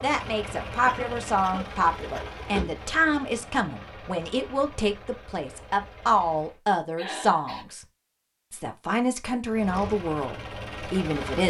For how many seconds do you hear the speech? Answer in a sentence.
You can hear the speech for 11 seconds altogether.